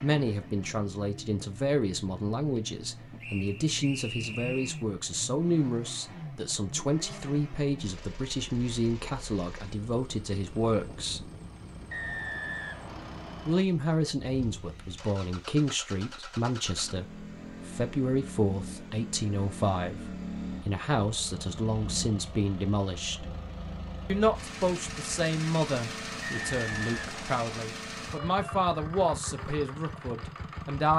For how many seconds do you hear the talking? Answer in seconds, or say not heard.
28 s.